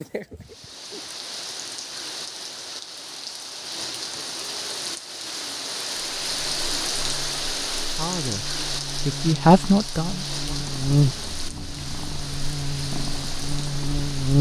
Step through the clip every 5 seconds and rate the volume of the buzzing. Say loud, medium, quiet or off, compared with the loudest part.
off, quiet, loud.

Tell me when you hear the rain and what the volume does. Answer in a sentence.
You can hear the rain from 0.0 to 14.3 s, getting louder then quieter.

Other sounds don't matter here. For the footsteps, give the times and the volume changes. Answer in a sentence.
You can't hear the footsteps here.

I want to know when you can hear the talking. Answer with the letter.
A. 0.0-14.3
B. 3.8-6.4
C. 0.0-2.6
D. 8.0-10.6
D.